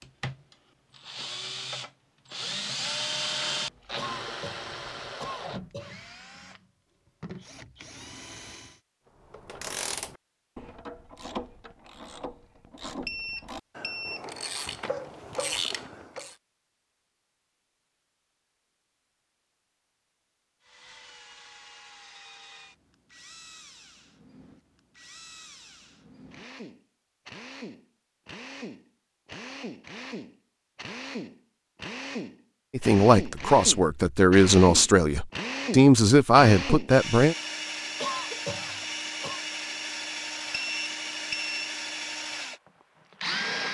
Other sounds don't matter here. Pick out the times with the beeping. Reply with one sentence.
You can hear the beeping from 13.1 to 14.2 s and from 40.5 to 41.7 s.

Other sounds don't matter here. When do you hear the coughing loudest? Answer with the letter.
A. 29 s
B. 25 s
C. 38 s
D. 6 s
C.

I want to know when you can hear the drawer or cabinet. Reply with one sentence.
The drawer or cabinet can't be heard in this clip.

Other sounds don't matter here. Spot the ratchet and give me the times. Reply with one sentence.
The ratchet can be heard from 9.3 to 16.4 s.